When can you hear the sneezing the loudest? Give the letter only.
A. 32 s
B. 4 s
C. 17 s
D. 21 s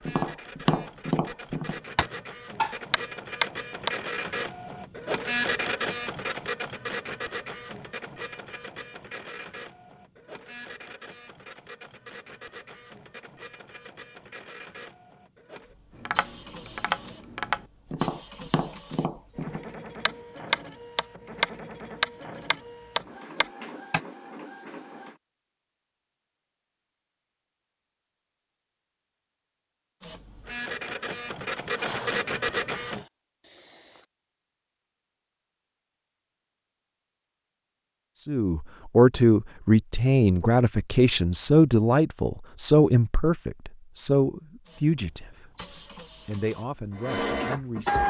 A.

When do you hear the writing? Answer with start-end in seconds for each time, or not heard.
not heard.